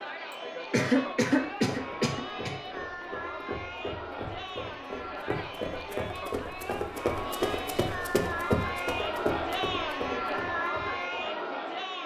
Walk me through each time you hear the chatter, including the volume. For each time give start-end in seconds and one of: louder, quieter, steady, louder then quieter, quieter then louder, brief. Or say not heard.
0.0-12.0 louder.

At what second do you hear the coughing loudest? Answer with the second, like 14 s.
1 s.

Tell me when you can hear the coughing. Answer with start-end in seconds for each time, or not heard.
0.7-2.5.